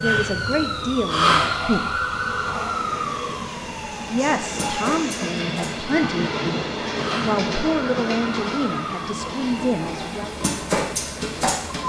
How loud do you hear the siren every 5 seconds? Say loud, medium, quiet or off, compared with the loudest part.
loud, medium, loud.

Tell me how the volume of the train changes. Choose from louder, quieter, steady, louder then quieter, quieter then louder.
louder then quieter.